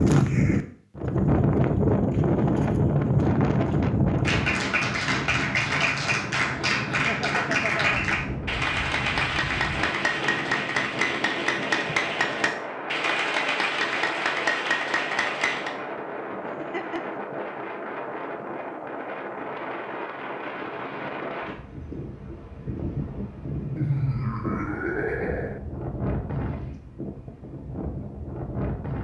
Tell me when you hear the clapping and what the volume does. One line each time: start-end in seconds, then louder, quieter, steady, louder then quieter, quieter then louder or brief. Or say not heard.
4.2-15.8 steady.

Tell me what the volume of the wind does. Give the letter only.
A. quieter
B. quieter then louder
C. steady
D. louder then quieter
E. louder
A.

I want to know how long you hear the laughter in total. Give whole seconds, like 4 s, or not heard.
4 s.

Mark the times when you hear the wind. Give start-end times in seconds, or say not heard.
0.0-28.9.